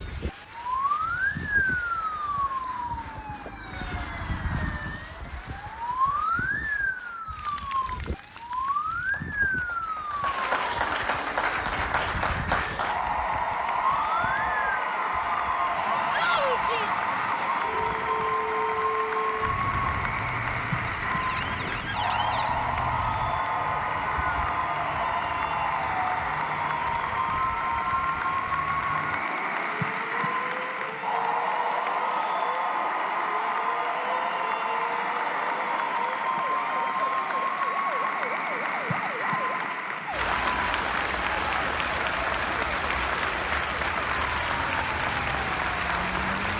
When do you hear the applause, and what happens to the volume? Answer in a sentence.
The applause can be heard from 0.0 to 46.5 s, getting louder.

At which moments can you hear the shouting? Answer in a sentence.
You can hear the shouting from 16.1 to 16.9 s.